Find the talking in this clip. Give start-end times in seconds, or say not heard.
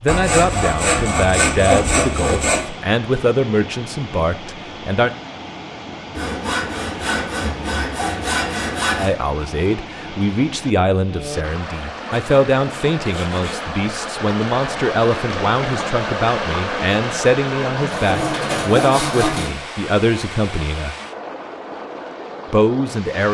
0.0-5.1, 8.9-20.9, 22.5-23.2.